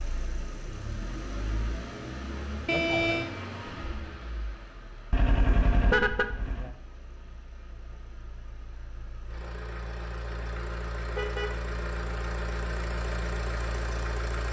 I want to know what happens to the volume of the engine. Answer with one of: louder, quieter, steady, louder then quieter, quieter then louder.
quieter then louder.